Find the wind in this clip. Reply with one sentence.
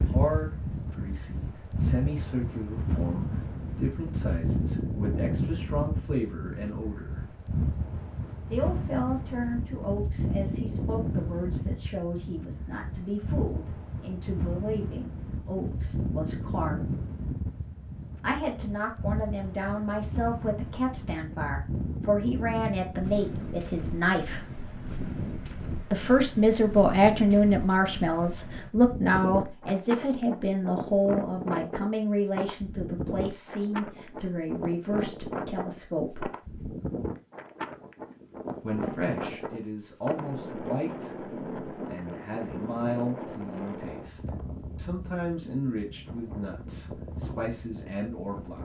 You can hear the wind from 0.0 to 48.5 s.